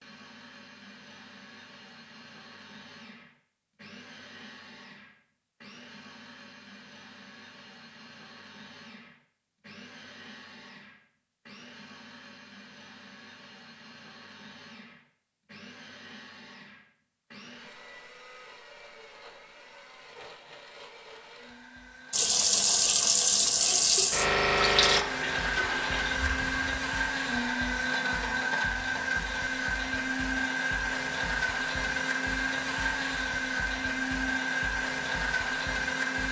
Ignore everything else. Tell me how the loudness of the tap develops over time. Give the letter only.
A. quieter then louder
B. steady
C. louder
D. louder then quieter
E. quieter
E.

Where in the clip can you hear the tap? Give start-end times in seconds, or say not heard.
22.1-26.8.